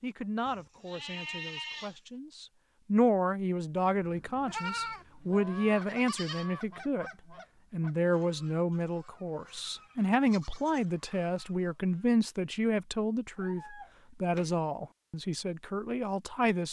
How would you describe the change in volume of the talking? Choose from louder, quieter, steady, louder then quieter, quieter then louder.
steady.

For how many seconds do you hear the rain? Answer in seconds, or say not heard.
not heard.